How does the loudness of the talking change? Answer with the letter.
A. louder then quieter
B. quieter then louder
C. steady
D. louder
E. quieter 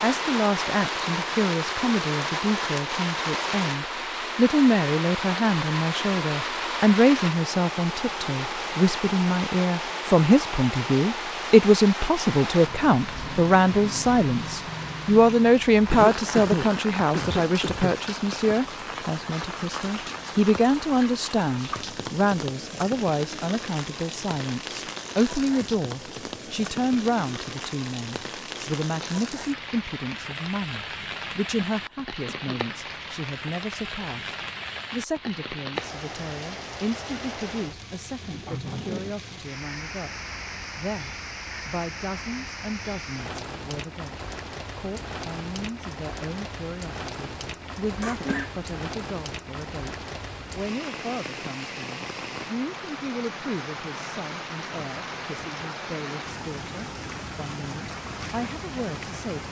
E.